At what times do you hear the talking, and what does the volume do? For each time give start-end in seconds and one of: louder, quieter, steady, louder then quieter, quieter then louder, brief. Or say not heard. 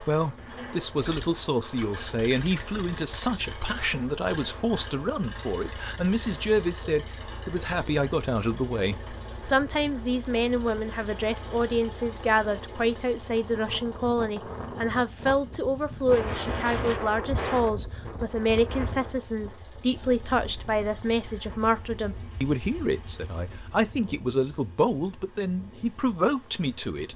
0.0-27.1 steady.